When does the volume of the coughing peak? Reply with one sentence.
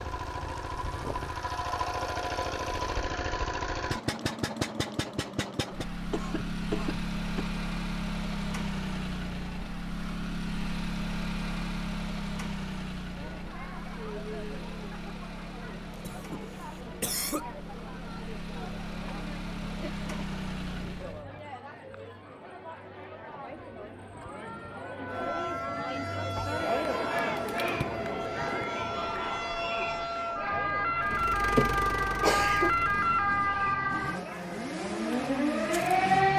The loudest moment of the coughing is at 32 seconds.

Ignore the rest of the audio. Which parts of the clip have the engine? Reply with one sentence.
The engine can be heard from 0.0 to 21.3 s and from 31.0 to 36.3 s.